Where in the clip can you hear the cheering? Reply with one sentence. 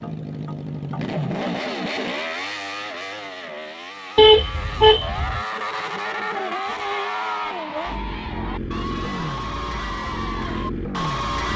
The cheering can be heard from 6.6 to 11.5 s.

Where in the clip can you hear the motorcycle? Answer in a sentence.
You can hear the motorcycle from 0.0 to 11.5 s.